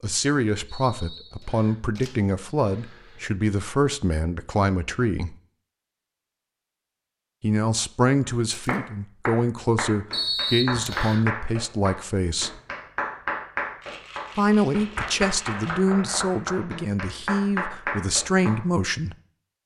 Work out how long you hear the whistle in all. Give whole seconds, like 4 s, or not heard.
2 s.